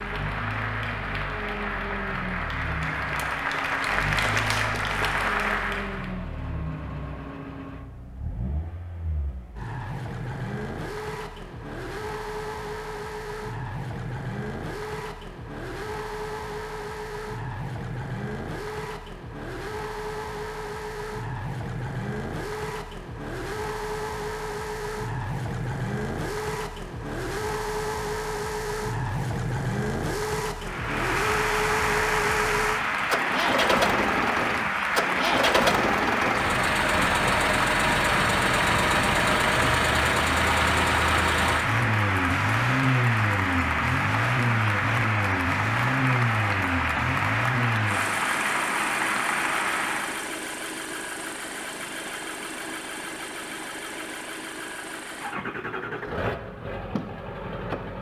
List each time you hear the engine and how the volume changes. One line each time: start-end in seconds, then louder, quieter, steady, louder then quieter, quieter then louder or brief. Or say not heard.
0.0-57.9 louder then quieter.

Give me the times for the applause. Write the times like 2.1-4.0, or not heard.
0.0-6.2, 30.6-50.3.